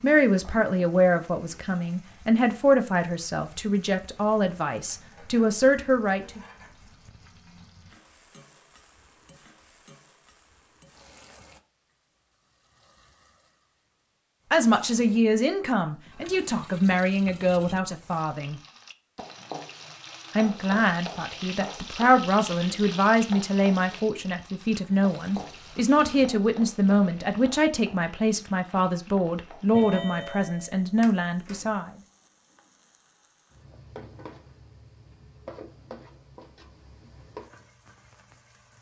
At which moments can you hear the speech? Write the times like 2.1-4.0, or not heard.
0.0-6.4, 14.5-18.6, 20.4-31.9.